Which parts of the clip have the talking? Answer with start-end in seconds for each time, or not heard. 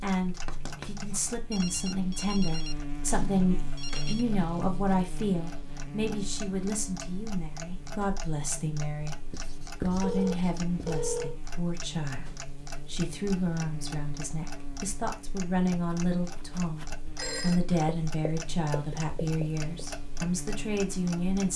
0.0-9.2, 9.8-21.5.